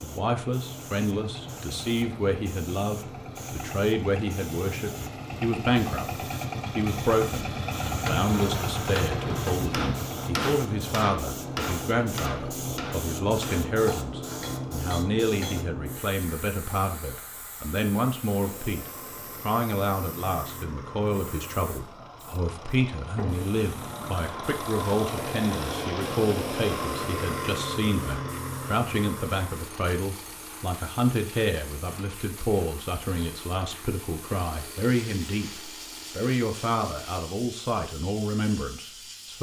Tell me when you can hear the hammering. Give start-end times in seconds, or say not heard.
8.0-15.7.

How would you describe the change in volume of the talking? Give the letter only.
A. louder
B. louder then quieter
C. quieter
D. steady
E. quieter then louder
D.